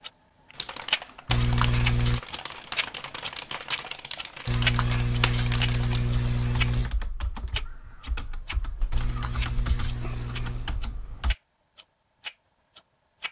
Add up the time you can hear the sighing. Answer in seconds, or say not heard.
5 s.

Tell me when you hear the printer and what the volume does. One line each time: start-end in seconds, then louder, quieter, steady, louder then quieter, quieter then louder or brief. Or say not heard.
not heard.